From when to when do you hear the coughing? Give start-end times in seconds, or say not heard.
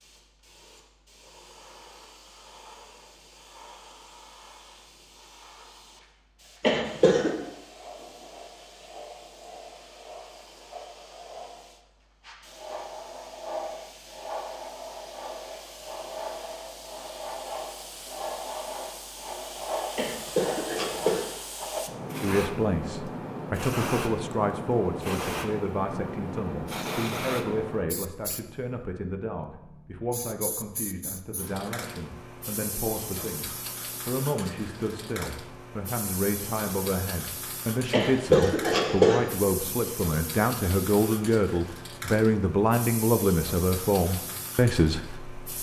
6.6-7.3, 19.9-21.2, 37.9-39.3.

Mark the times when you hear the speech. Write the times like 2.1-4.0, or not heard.
22.2-45.2.